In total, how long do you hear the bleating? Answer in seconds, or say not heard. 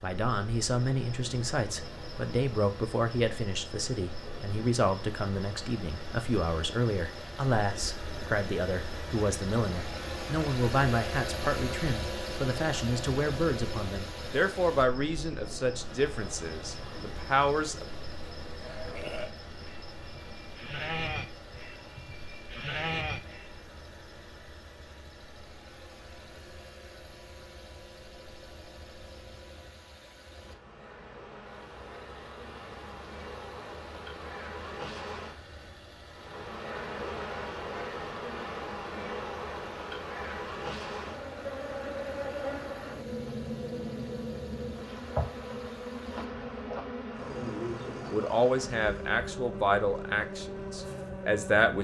5 s.